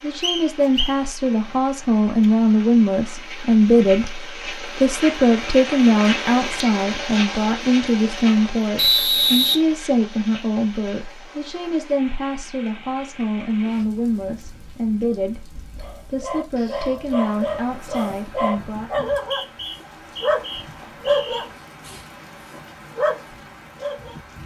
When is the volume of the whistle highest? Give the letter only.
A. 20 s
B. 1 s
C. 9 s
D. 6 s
C.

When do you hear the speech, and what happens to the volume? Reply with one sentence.
You can hear the speech from 0.0 to 19.1 s, getting quieter.